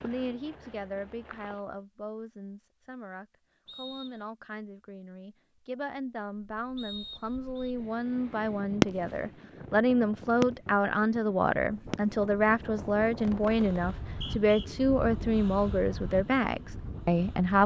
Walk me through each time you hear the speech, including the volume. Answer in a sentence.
The speech can be heard from 0.0 to 17.6 s, getting louder.